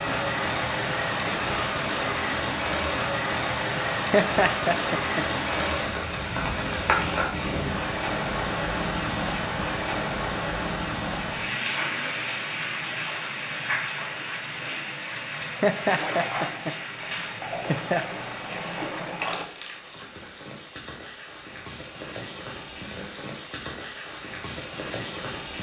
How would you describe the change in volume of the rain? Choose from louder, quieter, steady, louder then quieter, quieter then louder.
quieter.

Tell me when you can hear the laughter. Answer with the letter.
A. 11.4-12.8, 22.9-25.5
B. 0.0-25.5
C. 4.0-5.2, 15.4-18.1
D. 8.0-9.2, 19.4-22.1
C.